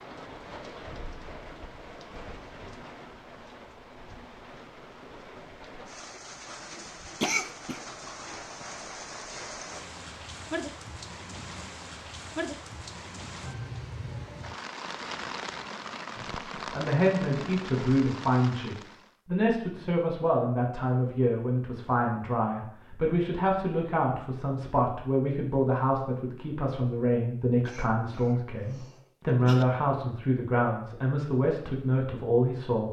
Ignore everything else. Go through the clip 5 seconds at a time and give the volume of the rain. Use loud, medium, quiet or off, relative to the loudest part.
medium, loud, loud, loud, off, off, off.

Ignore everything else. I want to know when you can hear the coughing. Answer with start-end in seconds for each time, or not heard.
7.2-7.8, 27.6-29.6.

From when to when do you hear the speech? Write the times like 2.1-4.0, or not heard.
16.1-32.8.